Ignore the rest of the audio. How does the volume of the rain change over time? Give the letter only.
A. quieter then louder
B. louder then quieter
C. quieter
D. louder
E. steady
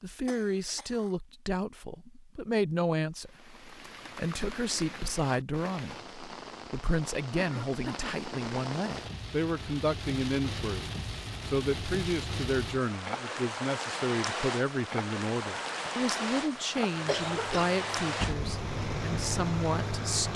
D.